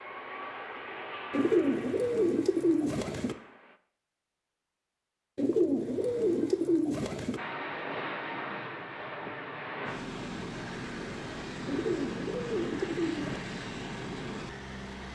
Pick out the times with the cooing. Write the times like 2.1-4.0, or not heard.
1.3-3.4, 5.3-7.4, 11.7-13.4.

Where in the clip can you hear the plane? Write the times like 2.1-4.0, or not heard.
0.0-3.8, 7.3-15.1.